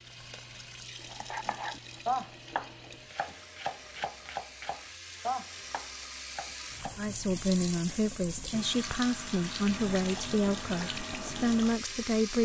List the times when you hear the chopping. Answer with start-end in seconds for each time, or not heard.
1.1-7.1.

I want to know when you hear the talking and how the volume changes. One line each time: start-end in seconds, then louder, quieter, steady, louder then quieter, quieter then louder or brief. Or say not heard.
7.0-12.3 steady.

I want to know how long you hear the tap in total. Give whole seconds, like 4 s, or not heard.
12 s.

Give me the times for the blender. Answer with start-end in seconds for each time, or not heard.
not heard.